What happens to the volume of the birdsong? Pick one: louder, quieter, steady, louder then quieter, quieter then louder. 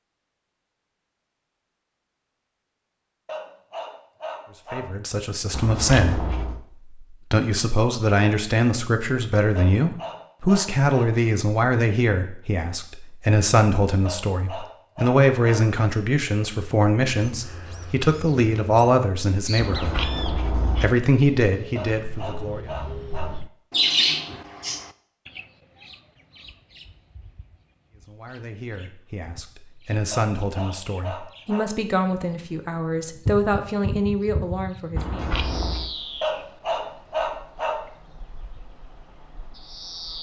louder then quieter.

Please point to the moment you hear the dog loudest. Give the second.
37 s.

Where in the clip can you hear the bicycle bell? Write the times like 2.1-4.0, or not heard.
5.5-6.6, 19.6-20.9, 35.0-35.9.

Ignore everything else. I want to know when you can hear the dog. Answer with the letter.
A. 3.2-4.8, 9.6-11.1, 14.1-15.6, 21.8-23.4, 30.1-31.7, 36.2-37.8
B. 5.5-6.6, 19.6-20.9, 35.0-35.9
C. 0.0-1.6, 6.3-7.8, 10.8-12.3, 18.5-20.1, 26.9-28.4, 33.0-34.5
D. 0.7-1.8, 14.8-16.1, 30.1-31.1
A.